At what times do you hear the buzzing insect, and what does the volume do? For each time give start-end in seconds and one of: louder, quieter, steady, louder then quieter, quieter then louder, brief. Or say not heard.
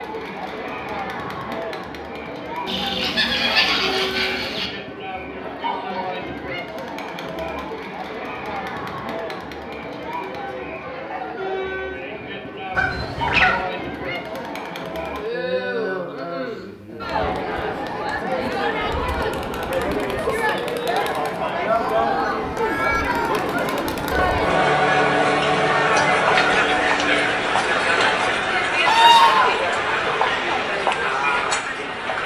not heard.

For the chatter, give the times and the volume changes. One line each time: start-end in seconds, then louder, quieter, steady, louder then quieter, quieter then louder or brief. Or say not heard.
0.0-32.2 louder.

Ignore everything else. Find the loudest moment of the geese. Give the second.
29 s.